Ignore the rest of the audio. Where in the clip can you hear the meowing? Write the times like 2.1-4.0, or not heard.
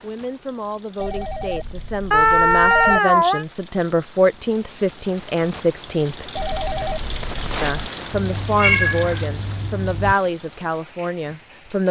2.1-3.5, 8.1-10.2.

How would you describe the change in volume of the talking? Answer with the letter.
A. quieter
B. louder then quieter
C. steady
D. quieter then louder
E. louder
E.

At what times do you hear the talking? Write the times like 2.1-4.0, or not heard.
0.0-6.3, 7.6-11.8.